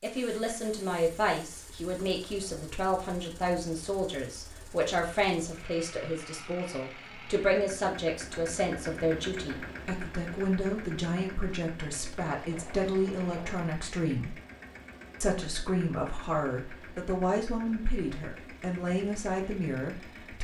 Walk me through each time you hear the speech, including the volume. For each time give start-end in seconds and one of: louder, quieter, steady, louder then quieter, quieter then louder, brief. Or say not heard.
0.0-14.3 steady
15.2-20.3 steady.